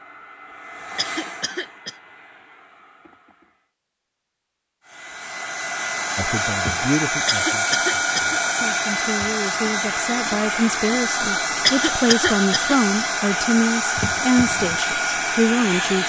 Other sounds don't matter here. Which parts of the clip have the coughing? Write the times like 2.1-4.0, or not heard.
0.9-1.9, 7.2-8.4, 11.7-12.8.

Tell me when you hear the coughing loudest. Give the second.
12 s.